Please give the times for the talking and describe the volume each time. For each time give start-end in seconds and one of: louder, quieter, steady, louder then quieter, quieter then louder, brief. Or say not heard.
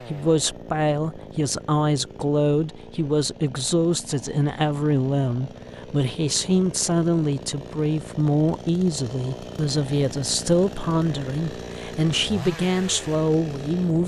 0.1-14.0 steady.